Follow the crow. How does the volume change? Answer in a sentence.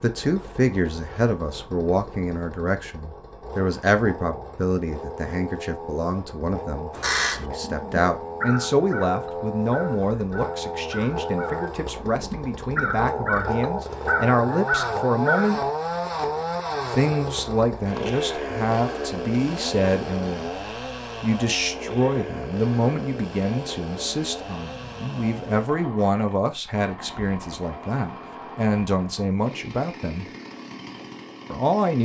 The volume of the crow goes down, then up.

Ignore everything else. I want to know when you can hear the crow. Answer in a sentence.
You can hear the crow from 6.9 to 15.6 s.